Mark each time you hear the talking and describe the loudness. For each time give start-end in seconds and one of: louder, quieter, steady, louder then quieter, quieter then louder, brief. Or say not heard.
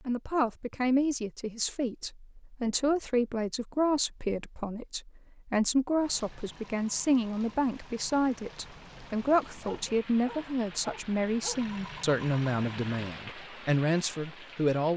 0.1-14.9 steady.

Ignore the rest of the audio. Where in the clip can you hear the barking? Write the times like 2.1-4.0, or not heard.
9.6-11.6.